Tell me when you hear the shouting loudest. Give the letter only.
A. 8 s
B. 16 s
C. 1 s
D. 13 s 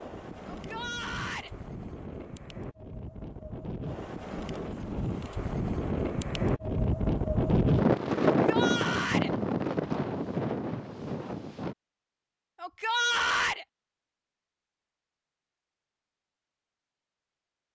D.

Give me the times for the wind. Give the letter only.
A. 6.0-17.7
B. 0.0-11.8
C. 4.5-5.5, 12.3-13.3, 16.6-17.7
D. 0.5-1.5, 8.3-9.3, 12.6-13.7
B.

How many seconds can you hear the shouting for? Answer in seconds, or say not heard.
3 s.